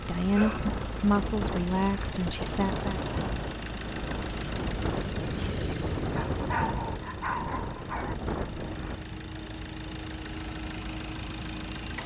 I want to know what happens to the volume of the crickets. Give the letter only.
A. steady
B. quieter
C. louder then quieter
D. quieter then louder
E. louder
B.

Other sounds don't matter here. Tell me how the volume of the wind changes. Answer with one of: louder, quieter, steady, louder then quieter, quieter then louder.
steady.